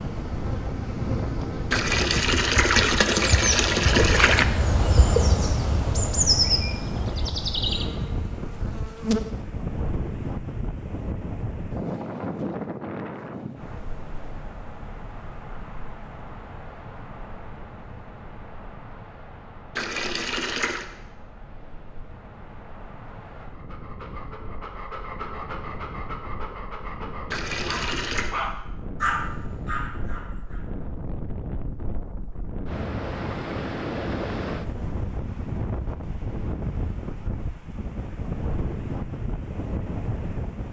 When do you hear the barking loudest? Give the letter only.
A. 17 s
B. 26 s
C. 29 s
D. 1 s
C.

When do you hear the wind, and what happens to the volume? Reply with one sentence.
You can hear the wind from 0.0 to 40.6 s, getting quieter then louder.